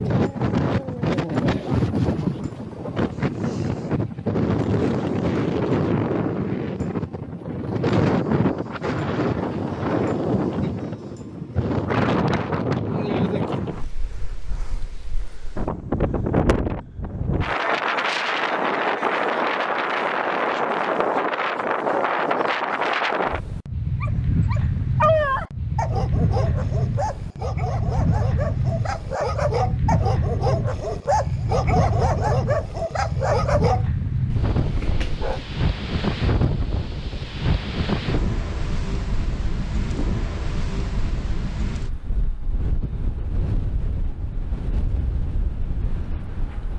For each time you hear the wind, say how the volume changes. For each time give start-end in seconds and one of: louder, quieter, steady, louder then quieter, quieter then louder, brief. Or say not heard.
0.0-46.7 quieter.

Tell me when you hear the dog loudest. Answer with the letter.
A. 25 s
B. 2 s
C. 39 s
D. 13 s
A.